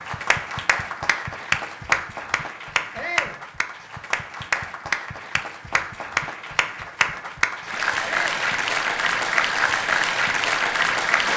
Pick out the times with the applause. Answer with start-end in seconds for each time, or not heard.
0.0-11.3.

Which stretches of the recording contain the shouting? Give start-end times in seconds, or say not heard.
2.9-3.4, 8.0-8.4.